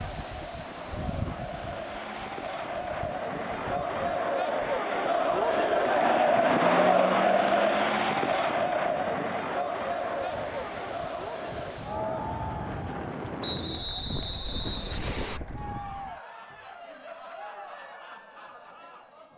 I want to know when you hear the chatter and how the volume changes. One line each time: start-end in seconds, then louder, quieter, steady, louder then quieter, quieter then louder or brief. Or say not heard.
0.0-19.3 louder then quieter.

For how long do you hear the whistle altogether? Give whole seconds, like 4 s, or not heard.
2 s.